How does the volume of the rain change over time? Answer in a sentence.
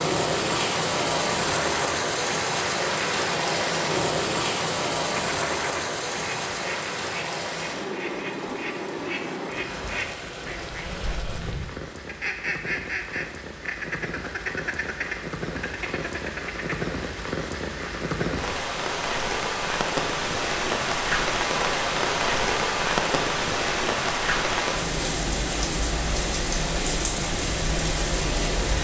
The loudness of the rain goes down, then up.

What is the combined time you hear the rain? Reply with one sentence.
You can hear the rain for 29 seconds altogether.